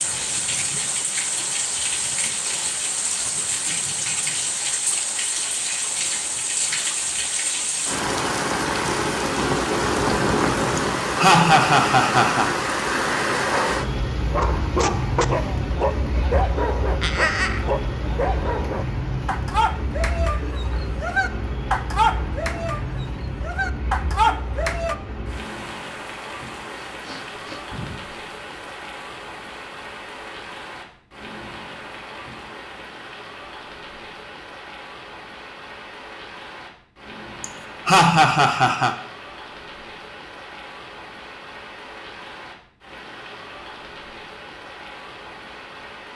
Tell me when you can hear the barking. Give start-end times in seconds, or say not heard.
13.5-24.9.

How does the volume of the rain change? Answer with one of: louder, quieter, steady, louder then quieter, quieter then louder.
quieter.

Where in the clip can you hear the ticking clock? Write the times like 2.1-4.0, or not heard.
not heard.